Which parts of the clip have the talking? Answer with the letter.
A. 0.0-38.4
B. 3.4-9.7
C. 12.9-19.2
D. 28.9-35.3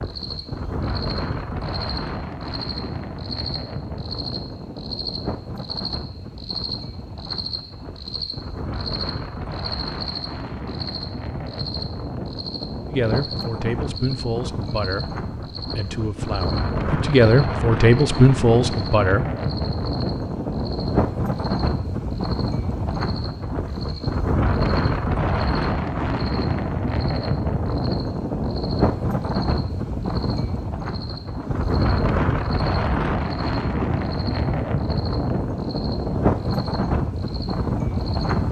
C.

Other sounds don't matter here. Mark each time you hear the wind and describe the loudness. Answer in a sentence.
The wind can be heard from 0.0 to 38.4 s, getting louder.